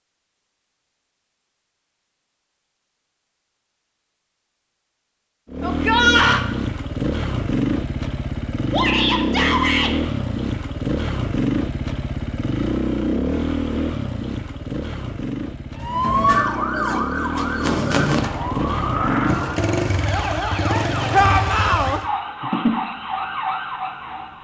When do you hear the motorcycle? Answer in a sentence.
You can hear the motorcycle from 5.5 to 22.1 s.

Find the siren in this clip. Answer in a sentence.
The siren can be heard from 15.8 to 24.3 s.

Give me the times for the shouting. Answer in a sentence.
The shouting can be heard from 5.6 to 6.5 s, from 8.7 to 9.9 s and from 21.1 to 22.0 s.